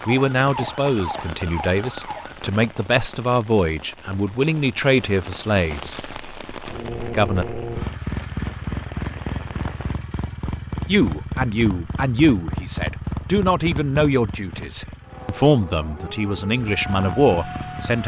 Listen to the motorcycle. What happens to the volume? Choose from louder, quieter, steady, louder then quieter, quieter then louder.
quieter.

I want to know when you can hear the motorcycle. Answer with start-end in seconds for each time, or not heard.
6.7-18.0.